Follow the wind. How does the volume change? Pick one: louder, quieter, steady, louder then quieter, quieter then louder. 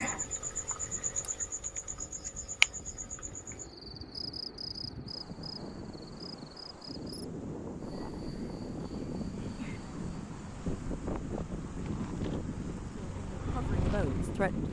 louder.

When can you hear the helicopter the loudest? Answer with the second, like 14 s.
14 s.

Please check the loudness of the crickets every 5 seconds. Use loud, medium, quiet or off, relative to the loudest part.
loud, quiet, off.